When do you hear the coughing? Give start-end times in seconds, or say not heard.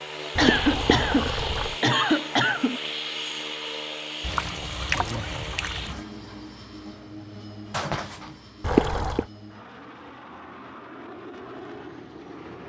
0.3-2.8, 7.7-8.3.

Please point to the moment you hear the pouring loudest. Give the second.
9 s.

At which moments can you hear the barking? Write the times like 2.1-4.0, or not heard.
not heard.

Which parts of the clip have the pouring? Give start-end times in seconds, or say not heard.
0.3-1.8, 4.2-6.0, 8.6-9.2.